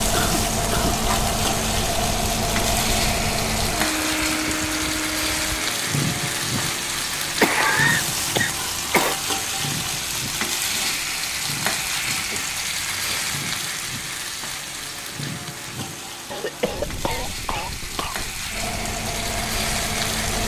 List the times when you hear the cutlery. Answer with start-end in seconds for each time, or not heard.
not heard.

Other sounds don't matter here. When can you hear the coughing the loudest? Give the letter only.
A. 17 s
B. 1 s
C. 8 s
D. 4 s
C.